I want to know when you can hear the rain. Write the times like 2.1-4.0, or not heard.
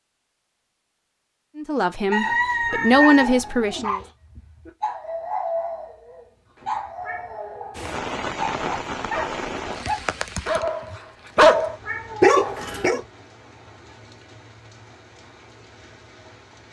7.8-16.6.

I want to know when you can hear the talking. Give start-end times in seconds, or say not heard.
1.6-4.0.